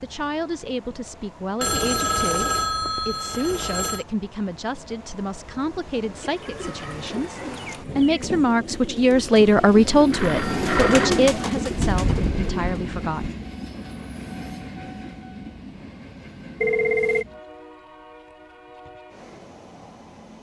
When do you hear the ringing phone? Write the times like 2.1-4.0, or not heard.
1.6-4.0, 10.1-11.2, 16.6-17.2.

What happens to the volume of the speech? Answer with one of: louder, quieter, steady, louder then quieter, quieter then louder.
louder then quieter.